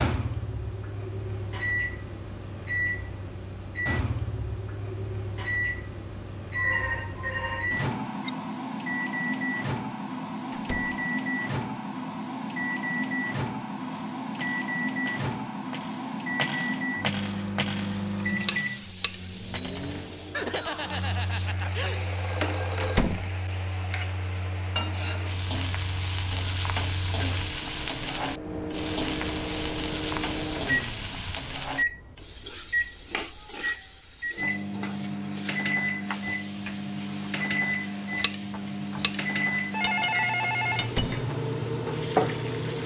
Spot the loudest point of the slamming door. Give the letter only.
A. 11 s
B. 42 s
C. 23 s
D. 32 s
C.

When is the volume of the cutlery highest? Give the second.
42 s.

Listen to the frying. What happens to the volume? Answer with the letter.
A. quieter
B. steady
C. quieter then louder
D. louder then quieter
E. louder
D.